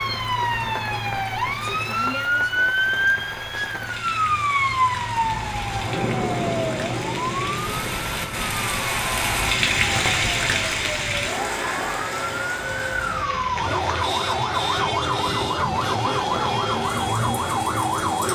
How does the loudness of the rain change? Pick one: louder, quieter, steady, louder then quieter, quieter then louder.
louder then quieter.